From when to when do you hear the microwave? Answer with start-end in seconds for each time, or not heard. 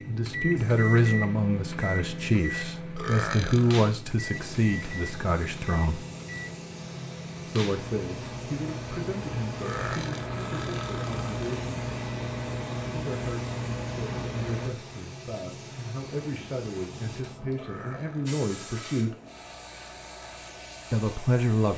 0.0-14.8.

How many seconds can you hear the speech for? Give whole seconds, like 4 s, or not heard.
17 s.